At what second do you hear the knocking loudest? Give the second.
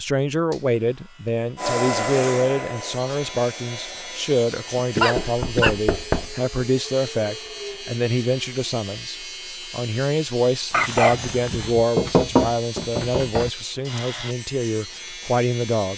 12 s.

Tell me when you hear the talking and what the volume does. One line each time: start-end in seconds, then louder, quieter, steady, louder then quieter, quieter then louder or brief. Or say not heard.
0.0-15.9 steady.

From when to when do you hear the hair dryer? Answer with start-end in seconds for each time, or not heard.
1.6-5.3.